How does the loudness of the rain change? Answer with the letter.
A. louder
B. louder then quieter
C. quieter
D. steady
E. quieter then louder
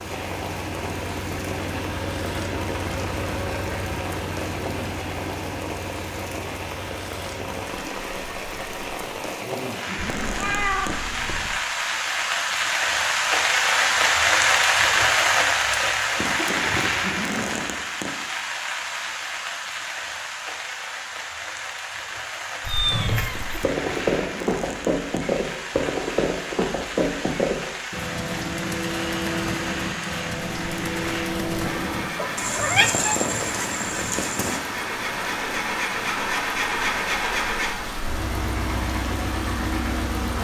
B.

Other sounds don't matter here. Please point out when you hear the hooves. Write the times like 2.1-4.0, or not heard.
22.8-34.6.